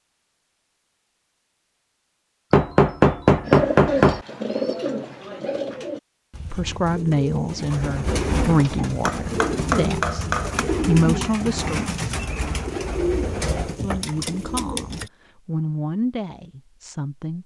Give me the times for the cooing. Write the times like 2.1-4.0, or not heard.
3.4-15.1.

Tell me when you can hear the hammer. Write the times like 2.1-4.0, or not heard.
2.5-4.2, 8.9-10.6.